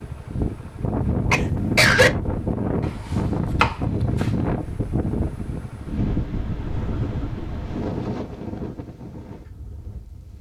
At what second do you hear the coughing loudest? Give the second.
2 s.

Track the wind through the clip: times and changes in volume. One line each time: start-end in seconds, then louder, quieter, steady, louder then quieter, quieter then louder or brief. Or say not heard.
0.0-10.3 quieter.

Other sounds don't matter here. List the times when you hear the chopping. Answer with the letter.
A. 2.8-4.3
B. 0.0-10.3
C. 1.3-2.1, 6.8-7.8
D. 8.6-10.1
A.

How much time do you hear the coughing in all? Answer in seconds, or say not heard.
2 s.